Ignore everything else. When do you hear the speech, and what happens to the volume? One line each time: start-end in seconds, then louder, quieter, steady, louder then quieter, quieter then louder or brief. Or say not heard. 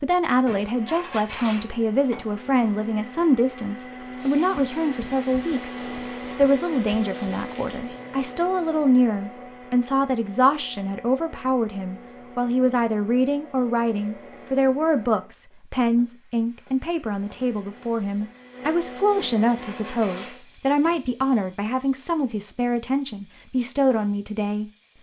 0.0-24.6 steady.